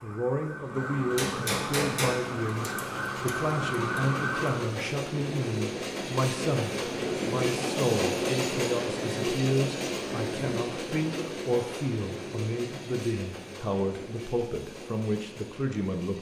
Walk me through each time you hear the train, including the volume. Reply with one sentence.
The train can be heard from 0.0 to 16.1 s, getting louder then quieter.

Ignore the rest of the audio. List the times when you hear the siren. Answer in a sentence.
You can hear the siren from 0.0 to 4.5 s.